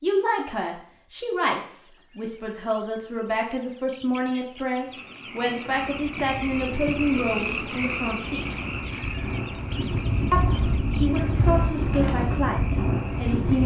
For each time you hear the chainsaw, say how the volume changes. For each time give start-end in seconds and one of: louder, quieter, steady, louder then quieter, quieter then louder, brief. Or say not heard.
not heard.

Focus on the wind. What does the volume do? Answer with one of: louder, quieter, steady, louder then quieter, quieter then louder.
louder.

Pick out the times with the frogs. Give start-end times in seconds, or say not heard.
4.8-13.6.